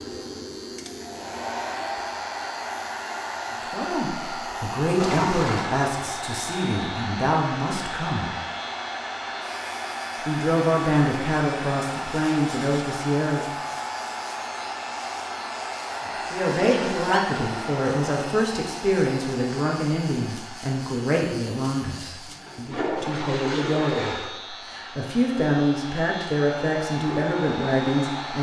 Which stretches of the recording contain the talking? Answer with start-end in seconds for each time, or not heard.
3.7-8.3, 10.2-13.4, 16.1-28.3.